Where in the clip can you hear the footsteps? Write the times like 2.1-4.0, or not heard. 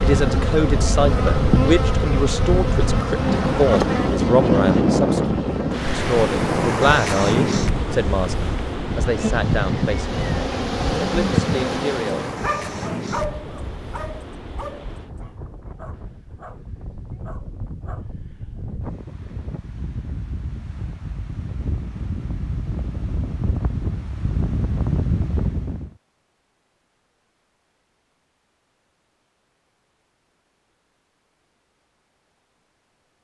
not heard.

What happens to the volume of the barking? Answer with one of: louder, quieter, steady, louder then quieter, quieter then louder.
quieter.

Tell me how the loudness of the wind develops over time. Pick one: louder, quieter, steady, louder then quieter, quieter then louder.
quieter then louder.